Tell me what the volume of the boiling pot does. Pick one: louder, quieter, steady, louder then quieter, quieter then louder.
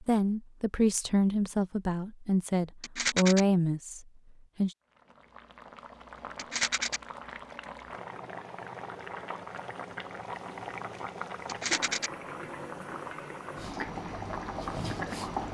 louder.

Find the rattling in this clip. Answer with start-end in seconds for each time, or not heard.
2.8-3.5, 6.3-7.0, 11.4-12.1.